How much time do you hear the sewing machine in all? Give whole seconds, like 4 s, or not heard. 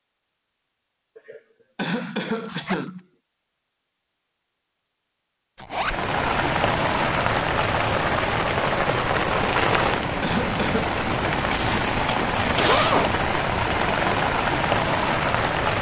not heard.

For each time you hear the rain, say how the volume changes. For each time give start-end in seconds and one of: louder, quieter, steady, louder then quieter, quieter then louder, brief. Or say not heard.
5.7-15.7 steady.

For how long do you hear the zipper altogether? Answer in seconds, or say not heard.
2 s.